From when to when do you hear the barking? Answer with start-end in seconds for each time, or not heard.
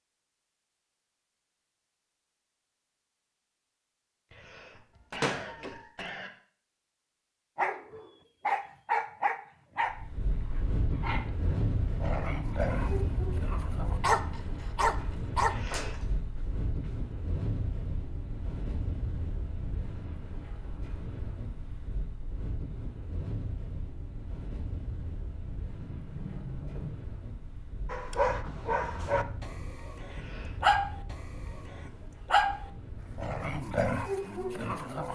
7.5-15.8, 27.9-35.0.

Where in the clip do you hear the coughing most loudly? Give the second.
5 s.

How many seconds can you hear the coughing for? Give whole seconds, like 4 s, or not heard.
3 s.